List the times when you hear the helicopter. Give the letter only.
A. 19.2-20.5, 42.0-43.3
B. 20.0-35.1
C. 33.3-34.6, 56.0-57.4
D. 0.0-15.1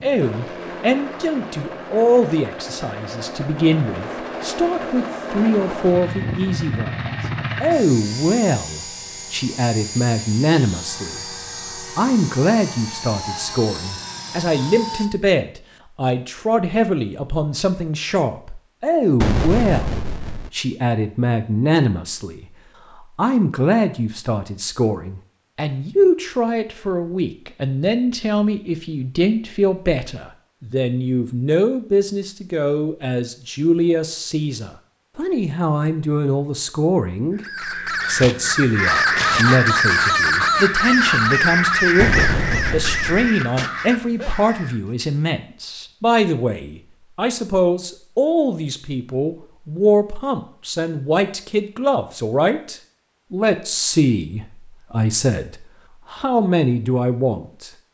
D.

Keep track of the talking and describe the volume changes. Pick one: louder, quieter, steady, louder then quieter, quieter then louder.
steady.